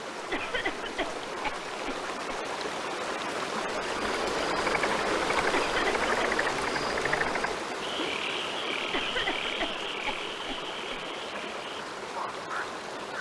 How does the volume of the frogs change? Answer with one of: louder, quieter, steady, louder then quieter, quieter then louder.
quieter.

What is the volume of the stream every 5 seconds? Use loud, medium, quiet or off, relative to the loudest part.
loud, loud, medium.